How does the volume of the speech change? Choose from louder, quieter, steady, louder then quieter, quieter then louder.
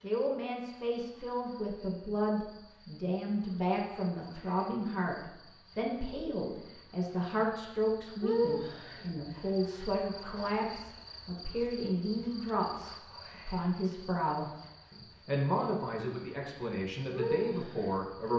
steady.